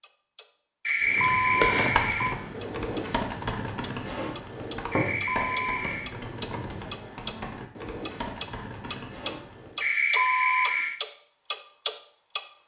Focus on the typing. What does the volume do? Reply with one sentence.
The volume of the typing goes down.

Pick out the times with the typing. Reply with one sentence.
You can hear the typing from 1.1 to 9.8 s.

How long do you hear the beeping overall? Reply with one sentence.
The beeping can be heard for 4 seconds in total.